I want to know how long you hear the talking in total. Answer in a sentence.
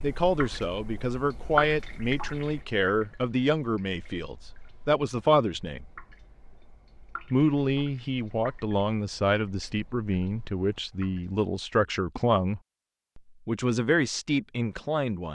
You can hear the talking for 14 seconds altogether.